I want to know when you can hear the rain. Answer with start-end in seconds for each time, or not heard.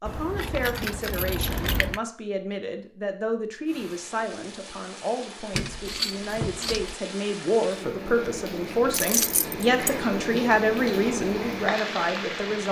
3.6-12.6.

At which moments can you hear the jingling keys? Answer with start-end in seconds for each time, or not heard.
0.1-2.0, 5.5-7.0, 8.9-9.9.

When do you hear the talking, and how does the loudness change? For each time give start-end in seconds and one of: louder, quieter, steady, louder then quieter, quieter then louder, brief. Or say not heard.
0.0-12.6 louder.